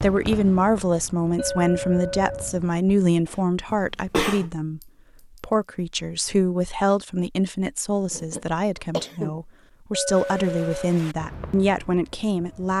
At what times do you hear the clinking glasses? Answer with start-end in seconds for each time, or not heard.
1.4-2.5, 4.8-5.4, 9.9-10.9.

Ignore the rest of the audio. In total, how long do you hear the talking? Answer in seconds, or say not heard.
12 s.